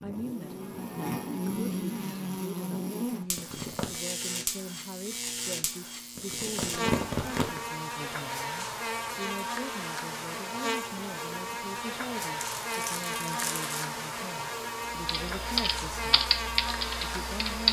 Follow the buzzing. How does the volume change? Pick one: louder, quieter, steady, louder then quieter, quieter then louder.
steady.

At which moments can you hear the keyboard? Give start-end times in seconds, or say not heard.
14.9-17.6.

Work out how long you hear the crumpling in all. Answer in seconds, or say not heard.
4 s.